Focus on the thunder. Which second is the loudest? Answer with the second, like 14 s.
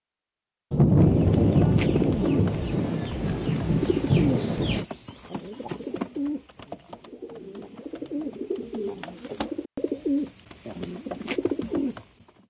1 s.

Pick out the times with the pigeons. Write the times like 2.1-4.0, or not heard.
1.0-12.1.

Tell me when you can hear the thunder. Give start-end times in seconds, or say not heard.
0.7-4.8.